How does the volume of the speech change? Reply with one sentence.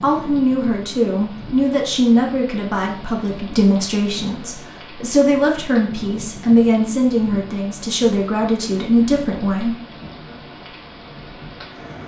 The loudness of the speech stays about the same.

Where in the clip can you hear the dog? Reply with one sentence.
The dog can't be heard in this clip.